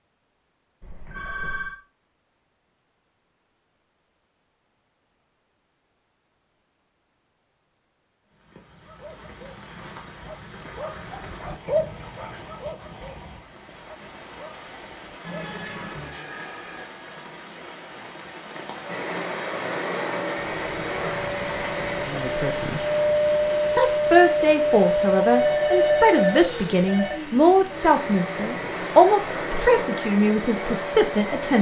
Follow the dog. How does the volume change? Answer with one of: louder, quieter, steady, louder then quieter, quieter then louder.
louder then quieter.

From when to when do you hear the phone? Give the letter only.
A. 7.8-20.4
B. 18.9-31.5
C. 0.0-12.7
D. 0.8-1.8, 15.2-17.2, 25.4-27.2
D.